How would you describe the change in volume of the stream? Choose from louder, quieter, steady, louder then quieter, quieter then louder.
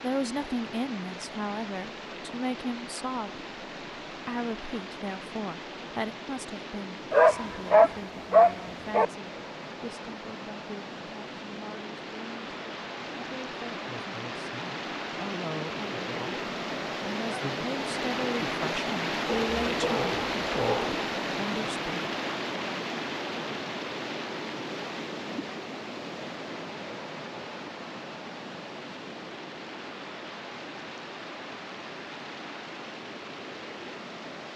louder then quieter.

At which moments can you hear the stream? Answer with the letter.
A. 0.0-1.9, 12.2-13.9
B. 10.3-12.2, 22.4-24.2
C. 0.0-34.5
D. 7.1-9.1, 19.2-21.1
C.